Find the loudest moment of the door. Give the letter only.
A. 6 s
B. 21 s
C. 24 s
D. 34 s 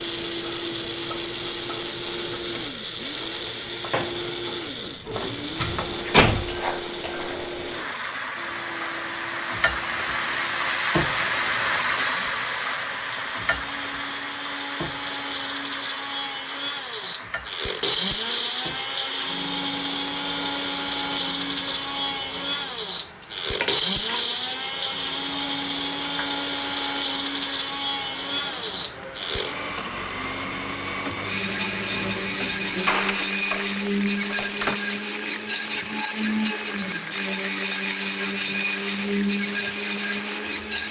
A.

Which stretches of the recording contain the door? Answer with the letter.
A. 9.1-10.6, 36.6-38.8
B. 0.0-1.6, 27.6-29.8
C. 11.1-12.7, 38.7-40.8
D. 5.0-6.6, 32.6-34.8
D.